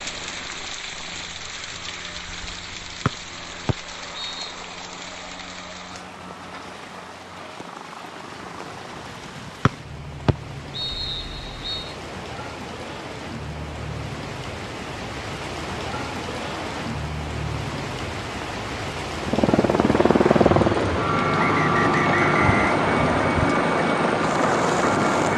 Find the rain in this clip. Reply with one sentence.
The rain can be heard from 0.0 to 25.3 s.